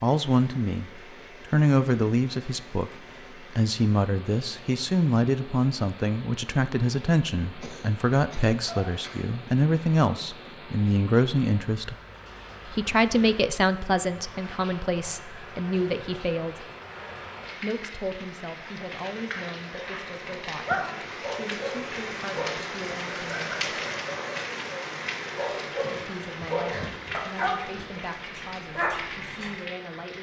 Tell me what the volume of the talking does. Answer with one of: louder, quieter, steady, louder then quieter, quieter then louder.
quieter.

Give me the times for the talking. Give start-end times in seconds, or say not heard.
0.0-11.9, 12.7-16.7, 17.6-23.6, 26.1-30.1.